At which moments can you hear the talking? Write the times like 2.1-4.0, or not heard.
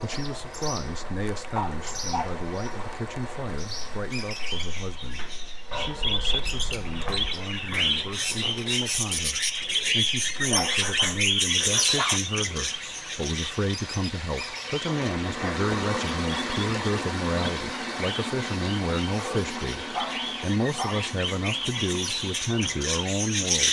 0.0-23.6.